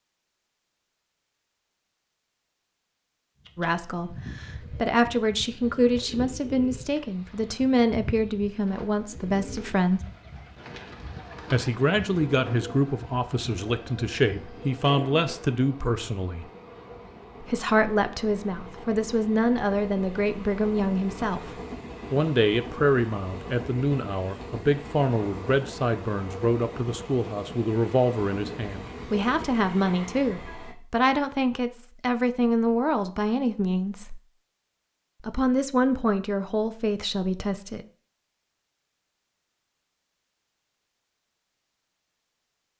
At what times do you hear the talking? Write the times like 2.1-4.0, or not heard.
3.5-10.0, 11.5-16.4, 17.4-21.5, 22.1-34.2, 35.2-37.9.